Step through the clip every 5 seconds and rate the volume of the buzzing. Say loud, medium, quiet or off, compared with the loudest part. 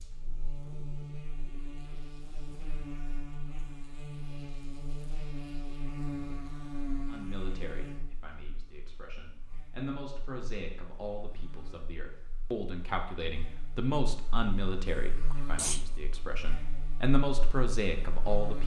loud, loud, quiet, loud.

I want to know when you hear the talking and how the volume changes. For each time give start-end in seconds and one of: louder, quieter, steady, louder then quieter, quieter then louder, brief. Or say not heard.
7.0-18.6 louder.